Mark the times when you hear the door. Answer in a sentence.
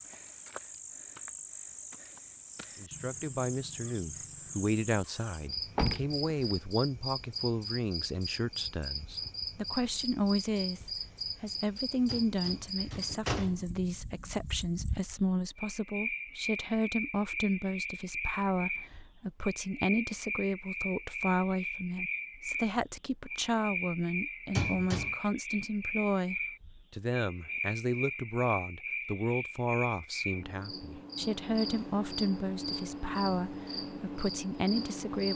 The door can be heard from 5.7 to 6.5 s, from 12.1 to 13.7 s and from 24.6 to 25.1 s.